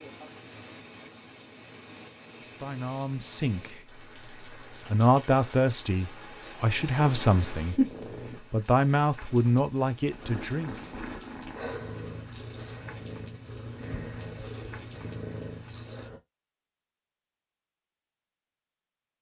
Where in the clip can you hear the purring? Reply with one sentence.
You can hear the purring from 7.0 to 8.4 s and from 10.1 to 16.2 s.